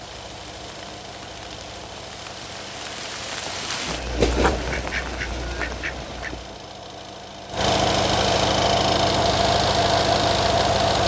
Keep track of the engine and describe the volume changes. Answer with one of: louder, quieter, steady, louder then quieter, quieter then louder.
louder.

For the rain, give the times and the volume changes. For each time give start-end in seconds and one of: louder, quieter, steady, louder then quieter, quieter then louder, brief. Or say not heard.
0.0-6.6 louder then quieter.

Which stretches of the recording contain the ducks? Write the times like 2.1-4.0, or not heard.
4.4-6.3.